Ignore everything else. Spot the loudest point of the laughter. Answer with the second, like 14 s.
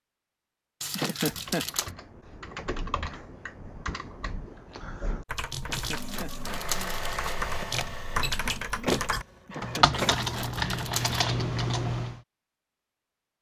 1 s.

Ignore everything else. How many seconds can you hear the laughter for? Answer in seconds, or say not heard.
4 s.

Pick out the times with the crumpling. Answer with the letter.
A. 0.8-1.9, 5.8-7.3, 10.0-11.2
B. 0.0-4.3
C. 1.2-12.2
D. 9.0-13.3
A.